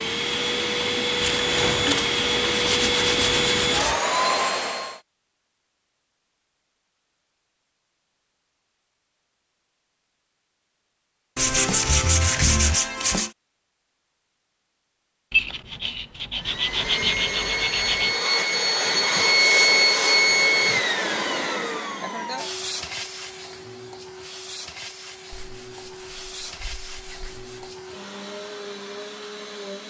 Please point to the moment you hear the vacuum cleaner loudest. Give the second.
20 s.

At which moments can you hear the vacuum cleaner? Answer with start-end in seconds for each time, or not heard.
0.0-5.0, 16.4-29.8.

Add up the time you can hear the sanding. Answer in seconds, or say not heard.
10 s.